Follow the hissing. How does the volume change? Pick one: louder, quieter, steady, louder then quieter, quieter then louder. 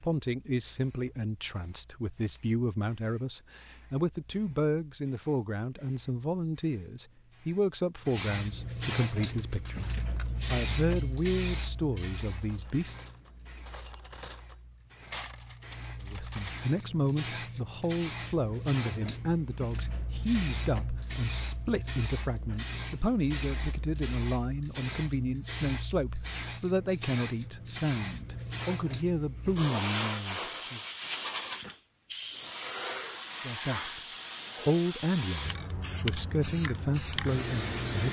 louder.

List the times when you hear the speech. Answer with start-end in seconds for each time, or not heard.
0.0-12.9, 16.0-30.8, 33.4-38.0.